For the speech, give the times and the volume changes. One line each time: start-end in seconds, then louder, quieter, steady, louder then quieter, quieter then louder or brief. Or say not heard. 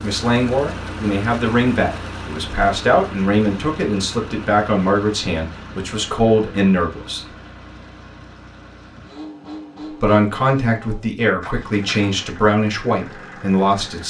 0.0-7.2 steady
9.9-14.0 steady.